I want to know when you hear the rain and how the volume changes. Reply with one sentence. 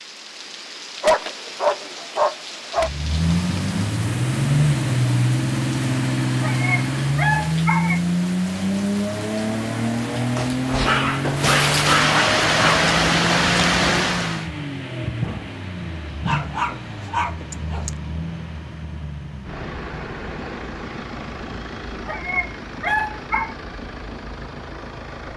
You can hear the rain from 0.0 to 14.5 s, getting louder.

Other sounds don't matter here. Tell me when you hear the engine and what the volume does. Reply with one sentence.
You can hear the engine from 2.8 to 25.3 s, getting quieter.